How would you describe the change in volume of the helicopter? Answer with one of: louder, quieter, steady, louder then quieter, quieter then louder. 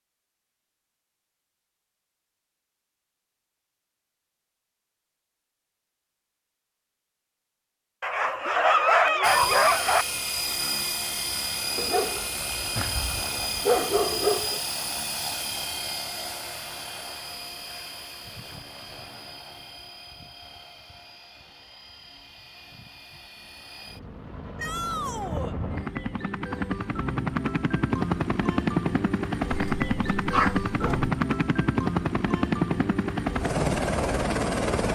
quieter then louder.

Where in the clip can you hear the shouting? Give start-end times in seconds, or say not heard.
24.6-25.6.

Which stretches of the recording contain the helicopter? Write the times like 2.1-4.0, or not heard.
9.2-34.9.